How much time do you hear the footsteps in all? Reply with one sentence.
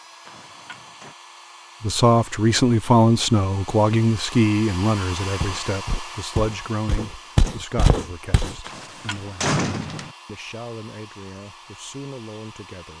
You can hear the footsteps for 3 seconds altogether.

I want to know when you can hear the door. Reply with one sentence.
You can hear the door from 0.2 to 1.1 s and from 8.7 to 10.2 s.